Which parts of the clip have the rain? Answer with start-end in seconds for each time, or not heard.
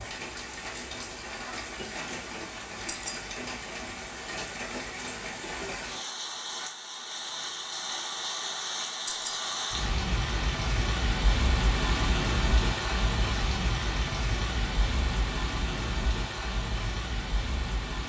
0.0-18.0.